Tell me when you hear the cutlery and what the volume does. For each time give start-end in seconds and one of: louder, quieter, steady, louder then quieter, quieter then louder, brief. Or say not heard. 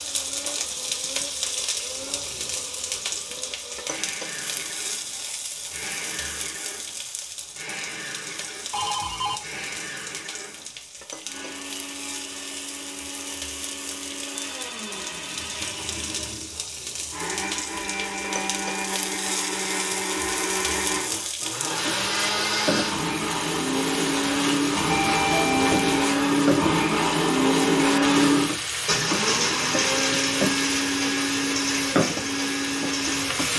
not heard.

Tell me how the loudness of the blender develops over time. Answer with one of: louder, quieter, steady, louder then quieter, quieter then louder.
louder.